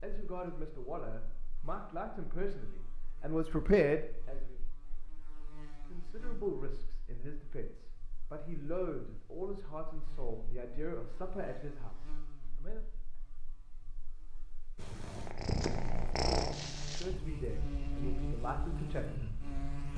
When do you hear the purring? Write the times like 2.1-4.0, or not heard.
14.8-19.9.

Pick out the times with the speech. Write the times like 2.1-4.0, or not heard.
0.0-4.6, 5.8-12.8, 16.9-19.4.